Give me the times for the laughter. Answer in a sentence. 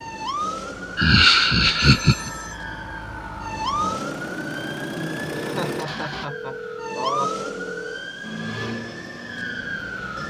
The laughter can be heard from 0.9 to 2.3 s and from 5.3 to 7.5 s.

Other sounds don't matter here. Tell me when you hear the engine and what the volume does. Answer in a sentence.
You can hear the engine from 0.0 to 6.2 s, getting louder; and briefly from 8.2 to 10.2 s.